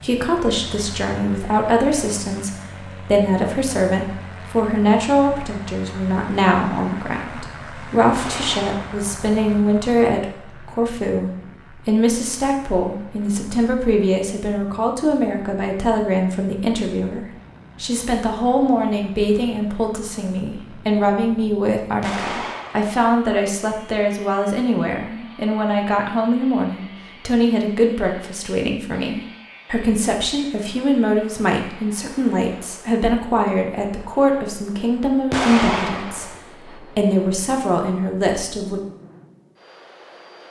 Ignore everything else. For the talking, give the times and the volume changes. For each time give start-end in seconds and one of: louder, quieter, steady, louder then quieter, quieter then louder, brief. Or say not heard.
0.0-38.8 steady.